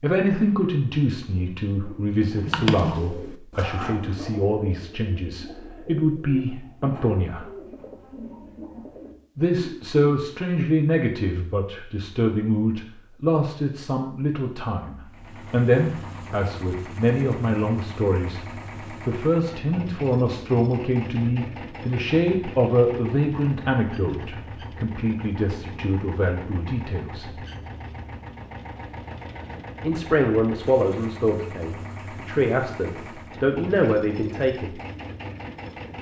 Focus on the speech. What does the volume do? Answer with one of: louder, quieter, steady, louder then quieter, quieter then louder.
steady.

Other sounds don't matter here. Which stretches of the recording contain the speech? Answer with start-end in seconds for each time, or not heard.
0.0-7.5, 9.3-18.4, 19.1-27.4, 29.8-34.8.